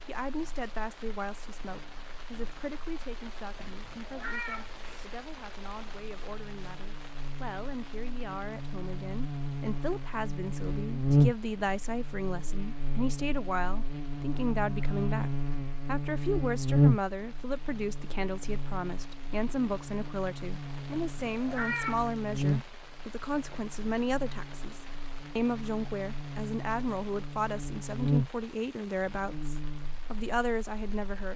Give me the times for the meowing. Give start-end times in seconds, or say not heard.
3.5-5.0, 20.9-22.1.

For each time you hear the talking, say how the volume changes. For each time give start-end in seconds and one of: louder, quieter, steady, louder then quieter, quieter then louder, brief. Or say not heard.
0.1-31.3 louder.